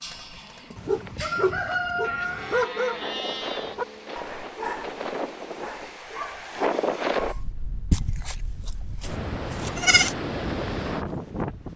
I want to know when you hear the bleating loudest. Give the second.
10 s.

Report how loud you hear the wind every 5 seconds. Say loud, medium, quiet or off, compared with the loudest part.
medium, loud, loud.